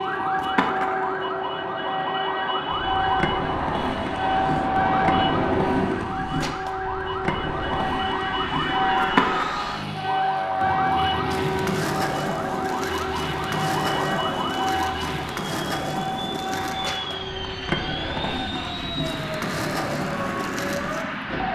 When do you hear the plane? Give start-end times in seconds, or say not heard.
0.0-21.5.